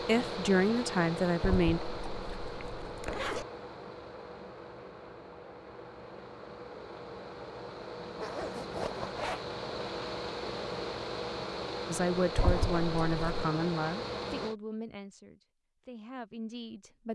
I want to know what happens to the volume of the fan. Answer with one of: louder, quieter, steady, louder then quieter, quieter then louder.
quieter then louder.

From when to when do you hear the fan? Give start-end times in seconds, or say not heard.
0.0-14.6.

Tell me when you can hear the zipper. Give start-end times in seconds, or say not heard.
1.4-3.5, 8.2-9.4, 12.3-13.4.